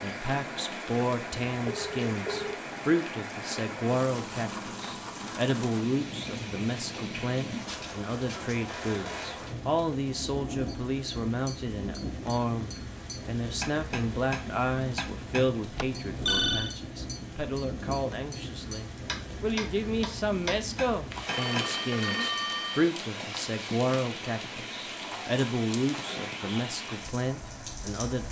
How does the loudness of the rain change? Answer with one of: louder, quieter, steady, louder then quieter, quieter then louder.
steady.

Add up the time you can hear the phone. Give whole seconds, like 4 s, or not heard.
4 s.